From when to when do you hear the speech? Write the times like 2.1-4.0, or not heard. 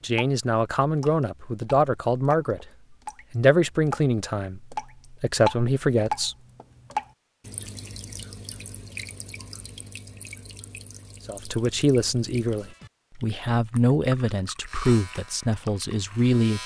0.0-2.6, 3.3-6.3, 11.2-16.6.